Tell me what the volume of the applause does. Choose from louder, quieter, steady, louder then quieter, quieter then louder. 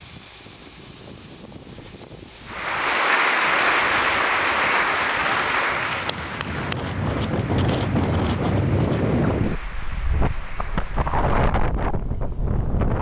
quieter.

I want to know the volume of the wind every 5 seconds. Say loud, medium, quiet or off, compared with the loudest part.
quiet, loud, loud.